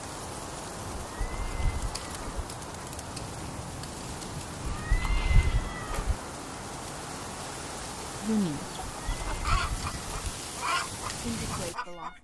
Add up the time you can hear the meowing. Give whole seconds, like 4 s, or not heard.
4 s.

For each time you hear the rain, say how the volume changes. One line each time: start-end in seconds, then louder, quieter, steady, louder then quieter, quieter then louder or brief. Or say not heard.
0.0-12.2 steady.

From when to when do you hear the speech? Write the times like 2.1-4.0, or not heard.
8.2-8.7, 11.2-12.2.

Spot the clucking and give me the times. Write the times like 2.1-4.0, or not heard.
8.8-12.2.